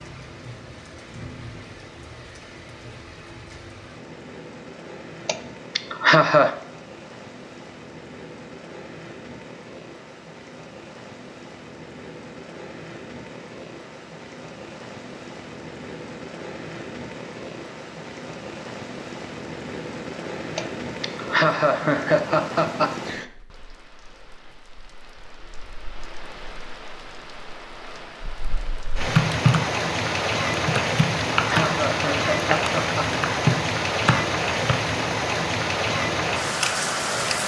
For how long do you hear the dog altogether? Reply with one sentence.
The dog can't be heard in this clip.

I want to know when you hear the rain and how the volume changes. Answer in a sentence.
The rain can be heard from 0.0 to 37.4 s, getting louder.